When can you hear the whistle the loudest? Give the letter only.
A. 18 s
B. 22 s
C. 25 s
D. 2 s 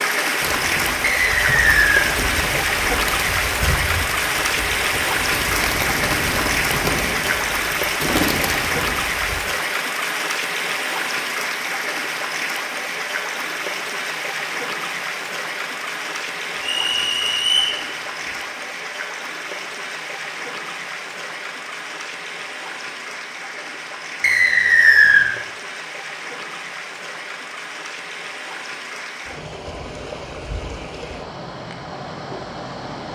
C.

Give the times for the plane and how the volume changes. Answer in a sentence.
The plane can't be heard in this clip.